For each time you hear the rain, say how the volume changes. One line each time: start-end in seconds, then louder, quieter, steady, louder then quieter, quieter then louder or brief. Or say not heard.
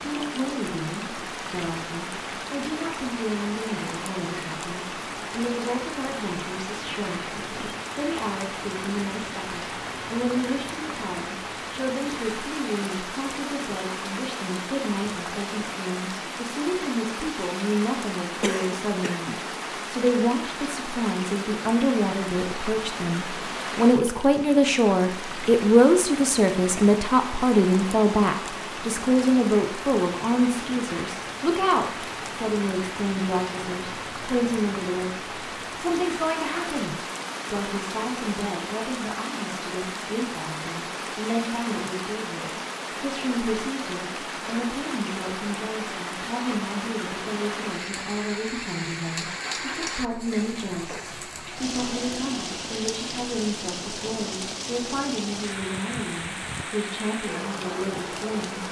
0.0-58.6 steady.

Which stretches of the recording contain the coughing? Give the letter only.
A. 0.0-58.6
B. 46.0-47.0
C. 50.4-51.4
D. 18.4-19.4
D.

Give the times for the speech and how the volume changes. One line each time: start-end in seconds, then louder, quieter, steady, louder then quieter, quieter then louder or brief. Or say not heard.
0.0-58.6 louder then quieter.